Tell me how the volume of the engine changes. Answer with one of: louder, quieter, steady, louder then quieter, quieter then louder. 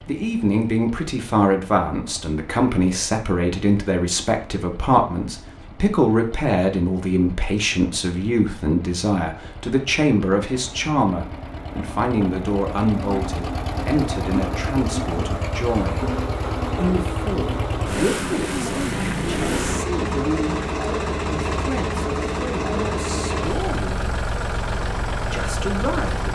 louder.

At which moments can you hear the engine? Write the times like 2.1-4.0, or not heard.
0.0-26.2.